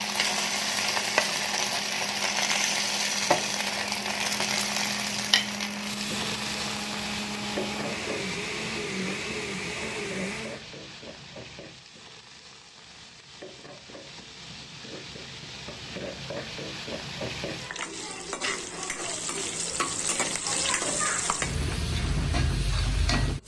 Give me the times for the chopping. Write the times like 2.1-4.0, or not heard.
not heard.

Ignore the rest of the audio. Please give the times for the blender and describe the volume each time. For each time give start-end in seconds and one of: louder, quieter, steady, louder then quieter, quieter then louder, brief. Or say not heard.
0.0-10.7 louder.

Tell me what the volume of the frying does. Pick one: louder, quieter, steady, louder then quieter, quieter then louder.
quieter then louder.